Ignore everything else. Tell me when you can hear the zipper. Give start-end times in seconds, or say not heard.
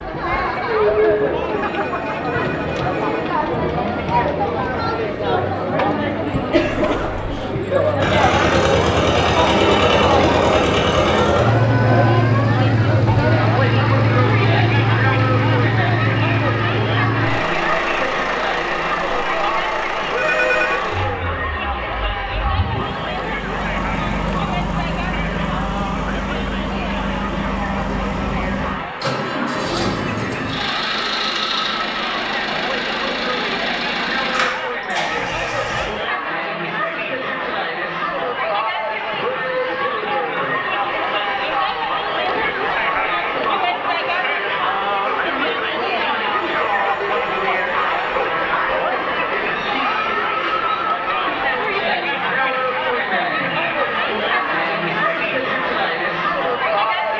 6.5-7.4.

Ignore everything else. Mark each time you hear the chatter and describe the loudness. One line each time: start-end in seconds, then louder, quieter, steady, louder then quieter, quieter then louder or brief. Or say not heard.
0.0-57.1 quieter then louder.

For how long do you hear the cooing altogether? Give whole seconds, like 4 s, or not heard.
not heard.